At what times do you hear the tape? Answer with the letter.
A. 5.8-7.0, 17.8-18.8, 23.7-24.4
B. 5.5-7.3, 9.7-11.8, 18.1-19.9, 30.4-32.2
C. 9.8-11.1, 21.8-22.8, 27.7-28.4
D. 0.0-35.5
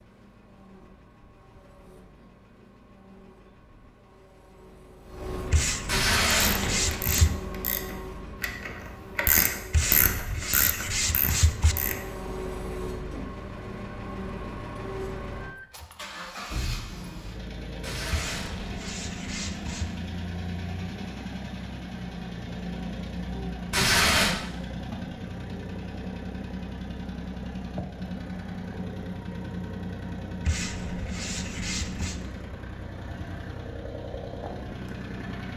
A.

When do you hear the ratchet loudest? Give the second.
9 s.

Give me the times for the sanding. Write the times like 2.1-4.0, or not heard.
5.5-7.3, 9.7-11.8, 18.1-19.9, 30.4-32.2.